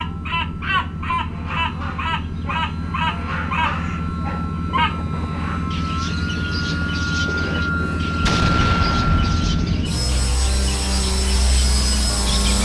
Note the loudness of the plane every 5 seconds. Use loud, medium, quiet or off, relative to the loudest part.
medium, loud, loud.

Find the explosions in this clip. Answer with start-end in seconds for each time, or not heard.
8.2-9.8.